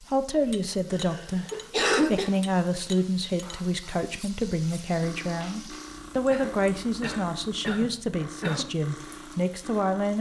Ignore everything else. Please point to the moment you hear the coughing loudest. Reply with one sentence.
The volume of the coughing peaks at 2 seconds.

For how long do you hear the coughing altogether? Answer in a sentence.
The coughing can be heard for 4 seconds in total.